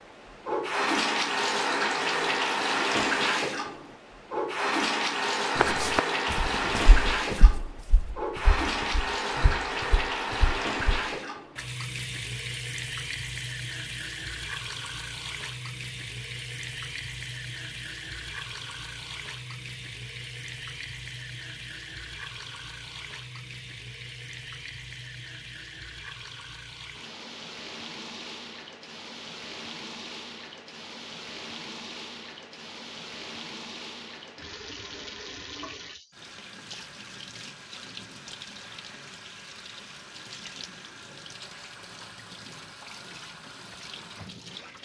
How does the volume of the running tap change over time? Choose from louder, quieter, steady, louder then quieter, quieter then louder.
quieter.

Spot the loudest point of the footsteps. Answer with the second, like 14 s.
6 s.